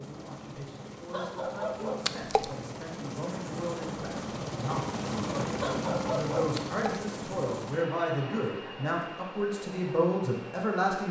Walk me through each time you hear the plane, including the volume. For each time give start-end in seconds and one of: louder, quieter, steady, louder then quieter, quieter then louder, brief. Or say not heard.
0.0-11.0 louder then quieter.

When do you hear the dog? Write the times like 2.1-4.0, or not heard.
1.1-2.1, 5.6-6.5.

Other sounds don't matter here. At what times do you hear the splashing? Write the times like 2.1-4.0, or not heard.
2.0-2.5, 6.5-7.0.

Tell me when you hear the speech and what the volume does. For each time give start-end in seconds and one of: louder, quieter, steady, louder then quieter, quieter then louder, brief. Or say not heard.
0.0-11.0 louder.